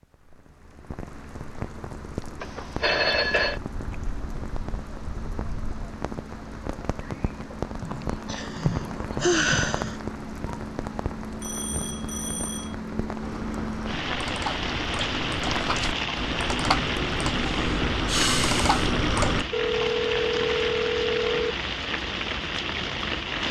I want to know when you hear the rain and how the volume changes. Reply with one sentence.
You can hear the rain from 0.0 to 23.4 s, getting louder.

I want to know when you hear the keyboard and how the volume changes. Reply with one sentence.
The keyboard can be heard from 13.2 to 19.4 s, getting louder.